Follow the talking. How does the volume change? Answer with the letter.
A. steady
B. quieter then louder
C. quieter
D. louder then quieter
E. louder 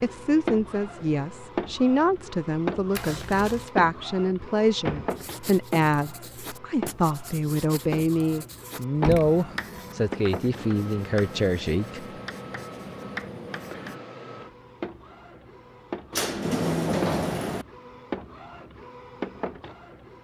A.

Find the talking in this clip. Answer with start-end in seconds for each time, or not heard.
0.0-12.1.